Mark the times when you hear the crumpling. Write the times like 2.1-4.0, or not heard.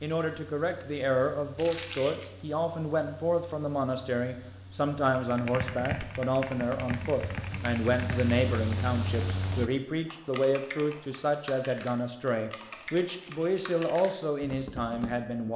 1.6-2.3, 12.6-14.0.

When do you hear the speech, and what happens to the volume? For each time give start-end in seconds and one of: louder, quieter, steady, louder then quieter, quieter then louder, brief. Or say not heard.
0.0-15.5 steady.